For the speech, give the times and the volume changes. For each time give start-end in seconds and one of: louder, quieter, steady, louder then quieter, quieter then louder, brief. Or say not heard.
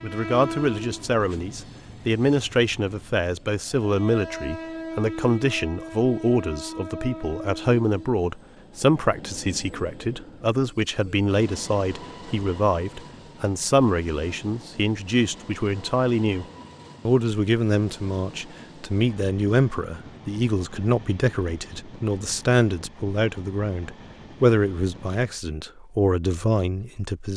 0.0-16.4 steady
17.1-27.3 steady.